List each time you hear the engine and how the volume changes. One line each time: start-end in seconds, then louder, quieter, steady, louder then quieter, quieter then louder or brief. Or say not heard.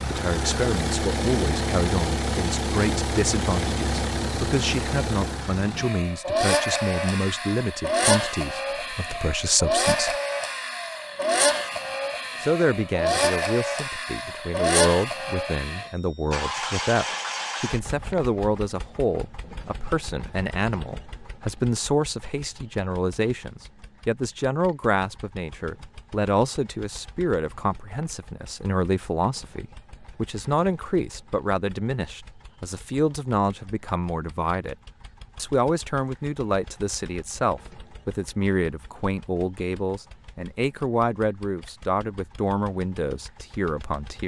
0.0-44.2 quieter.